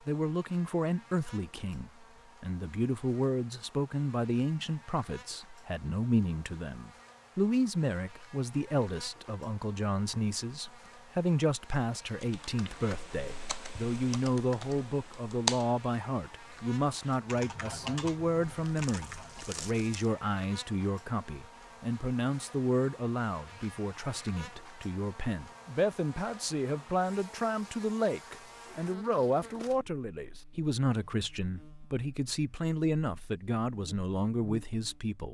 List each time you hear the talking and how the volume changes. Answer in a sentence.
You can hear the talking from 0.1 to 35.3 s, at a steady volume.